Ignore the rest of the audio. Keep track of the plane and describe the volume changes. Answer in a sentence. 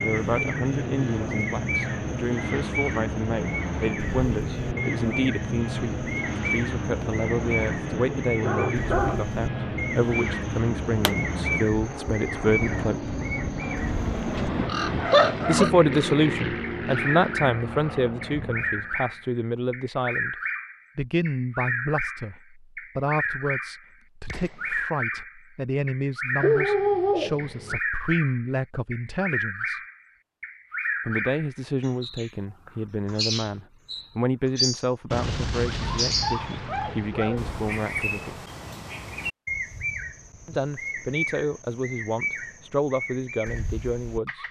The loudness of the plane stays about the same.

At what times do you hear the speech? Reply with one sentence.
You can hear the speech from 0.0 to 13.0 s, from 15.4 to 20.4 s, from 20.9 to 29.8 s, from 31.1 to 38.4 s and from 40.5 to 44.4 s.